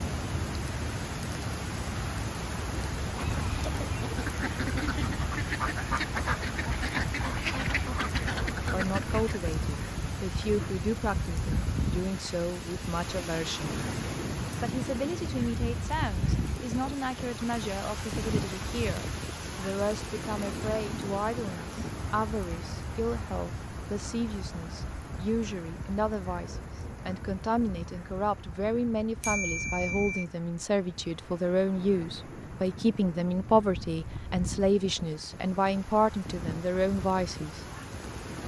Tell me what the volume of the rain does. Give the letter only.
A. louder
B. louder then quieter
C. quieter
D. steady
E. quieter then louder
C.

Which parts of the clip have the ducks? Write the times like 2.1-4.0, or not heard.
2.5-9.5.